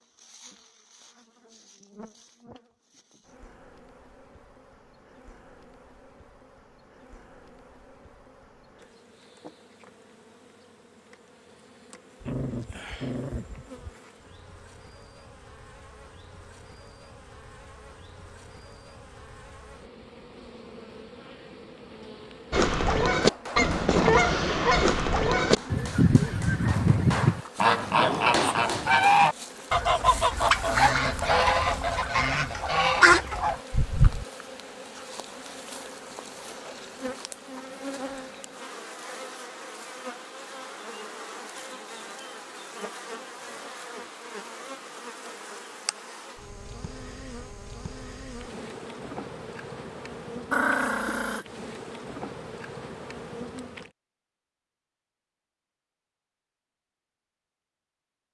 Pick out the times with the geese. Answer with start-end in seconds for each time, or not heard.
22.5-34.2.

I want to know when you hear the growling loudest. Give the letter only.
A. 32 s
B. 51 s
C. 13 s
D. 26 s
B.